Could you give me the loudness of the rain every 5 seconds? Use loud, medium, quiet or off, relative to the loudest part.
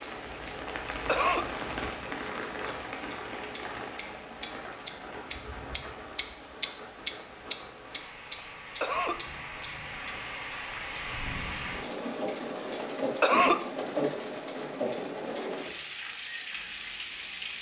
loud, medium, loud, loud.